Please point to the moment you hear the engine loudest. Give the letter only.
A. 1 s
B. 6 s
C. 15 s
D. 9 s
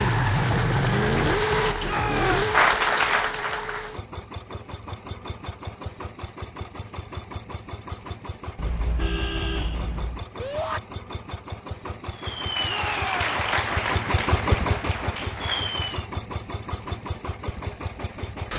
A.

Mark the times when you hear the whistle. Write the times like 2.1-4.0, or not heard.
not heard.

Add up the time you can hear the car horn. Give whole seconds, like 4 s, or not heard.
2 s.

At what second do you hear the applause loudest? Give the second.
3 s.